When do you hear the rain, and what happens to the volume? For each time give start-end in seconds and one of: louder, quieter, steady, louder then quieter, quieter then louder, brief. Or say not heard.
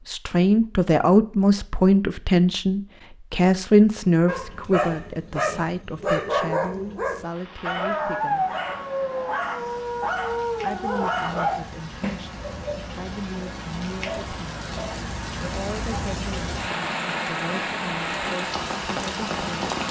7.2-19.8 louder.